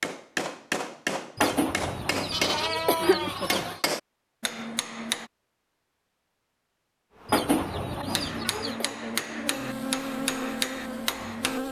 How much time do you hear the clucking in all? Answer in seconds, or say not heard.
4 s.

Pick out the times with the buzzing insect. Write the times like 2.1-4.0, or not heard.
7.2-11.6.